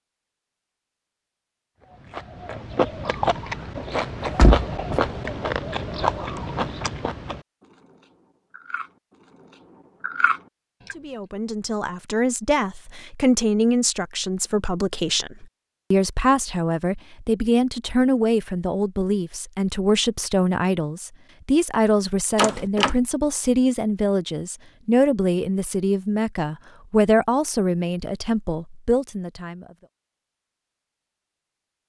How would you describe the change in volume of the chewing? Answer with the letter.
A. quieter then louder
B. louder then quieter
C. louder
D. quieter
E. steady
A.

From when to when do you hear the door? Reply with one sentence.
The door can be heard from 4.2 to 5.3 s and from 22.4 to 22.9 s.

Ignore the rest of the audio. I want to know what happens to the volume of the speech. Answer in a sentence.
The volume of the speech stays about the same.